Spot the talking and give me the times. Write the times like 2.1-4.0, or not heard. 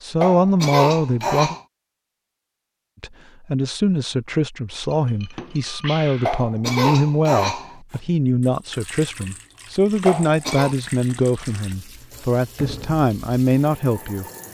0.0-1.6, 3.0-14.2.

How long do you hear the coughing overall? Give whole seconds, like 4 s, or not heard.
4 s.